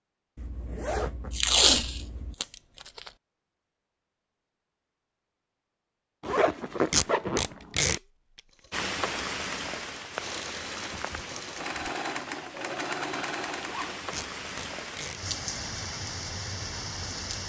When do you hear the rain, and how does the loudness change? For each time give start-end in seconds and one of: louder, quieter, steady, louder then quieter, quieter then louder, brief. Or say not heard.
8.7-17.4 quieter then louder.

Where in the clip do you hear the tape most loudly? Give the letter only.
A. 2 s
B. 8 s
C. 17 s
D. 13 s
A.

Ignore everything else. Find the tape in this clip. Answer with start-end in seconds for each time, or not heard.
1.3-3.1, 6.9-8.0, 14.1-15.2.